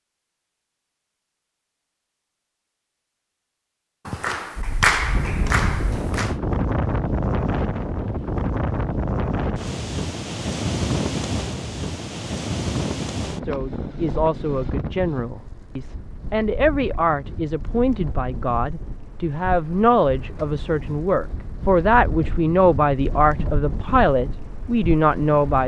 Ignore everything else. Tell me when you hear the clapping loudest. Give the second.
5 s.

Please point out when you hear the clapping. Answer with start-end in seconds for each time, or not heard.
4.0-6.3.